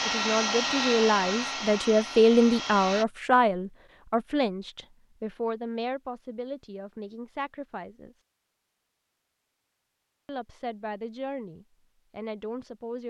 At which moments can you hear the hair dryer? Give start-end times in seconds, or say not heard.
0.0-3.0.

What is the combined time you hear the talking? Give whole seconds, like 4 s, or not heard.
11 s.